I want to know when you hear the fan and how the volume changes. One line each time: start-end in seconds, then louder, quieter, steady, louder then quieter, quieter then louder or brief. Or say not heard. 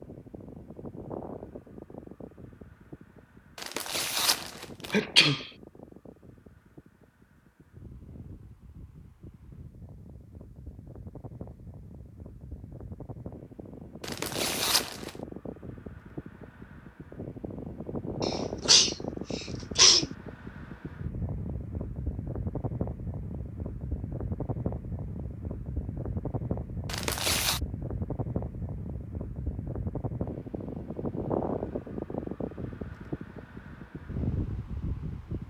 0.0-35.4 louder.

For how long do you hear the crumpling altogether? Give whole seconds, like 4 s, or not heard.
3 s.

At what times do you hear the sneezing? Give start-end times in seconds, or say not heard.
4.9-5.5, 18.2-20.1.